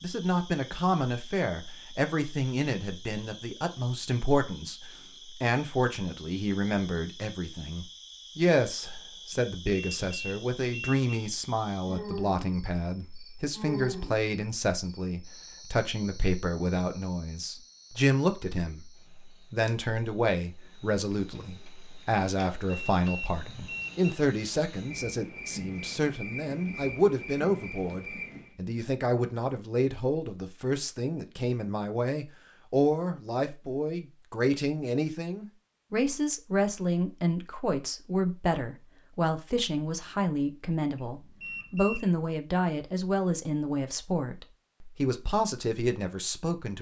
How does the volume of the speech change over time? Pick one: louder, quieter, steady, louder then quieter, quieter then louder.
steady.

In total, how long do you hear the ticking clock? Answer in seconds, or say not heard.
not heard.